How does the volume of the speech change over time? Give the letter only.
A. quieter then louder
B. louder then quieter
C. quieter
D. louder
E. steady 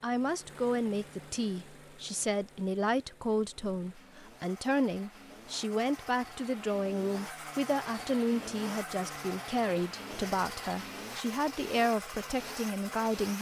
E.